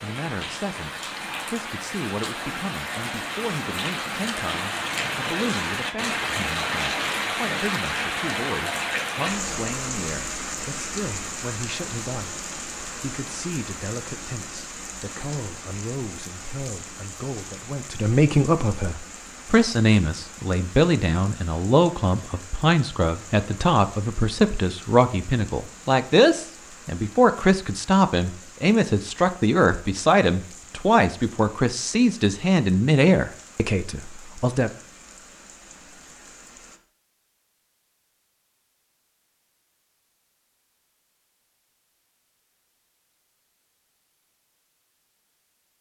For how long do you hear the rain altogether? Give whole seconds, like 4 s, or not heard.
37 s.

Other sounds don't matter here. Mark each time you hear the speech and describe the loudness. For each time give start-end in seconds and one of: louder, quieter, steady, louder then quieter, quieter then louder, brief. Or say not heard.
0.0-34.7 louder.